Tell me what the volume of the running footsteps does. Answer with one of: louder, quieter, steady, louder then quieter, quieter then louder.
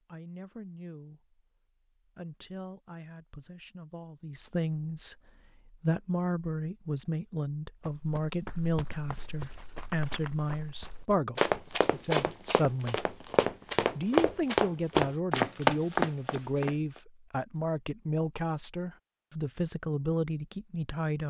louder.